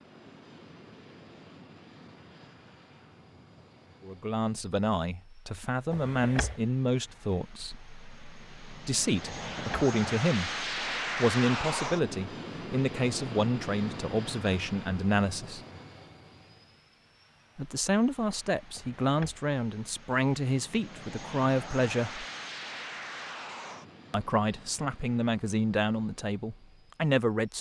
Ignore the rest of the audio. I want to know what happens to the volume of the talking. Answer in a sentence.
The loudness of the talking stays about the same.